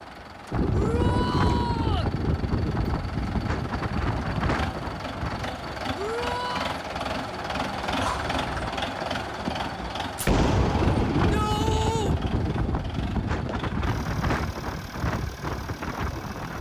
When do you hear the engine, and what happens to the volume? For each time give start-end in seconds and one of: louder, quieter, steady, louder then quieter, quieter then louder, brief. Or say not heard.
0.0-16.5 louder then quieter.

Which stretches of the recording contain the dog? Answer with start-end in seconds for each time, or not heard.
not heard.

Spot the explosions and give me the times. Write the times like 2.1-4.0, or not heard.
10.2-11.3.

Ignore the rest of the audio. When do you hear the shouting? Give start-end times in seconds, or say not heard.
0.7-2.1, 6.0-6.8, 11.1-12.2.